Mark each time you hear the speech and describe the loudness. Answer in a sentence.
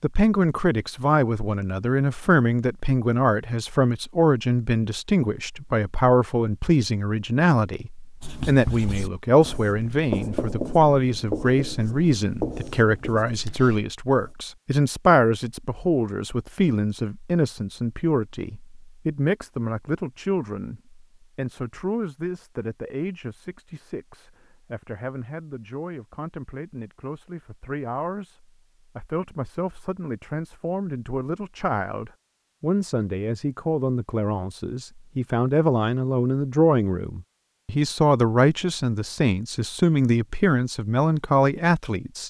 The speech can be heard from 0.0 to 42.2 s, getting quieter then louder.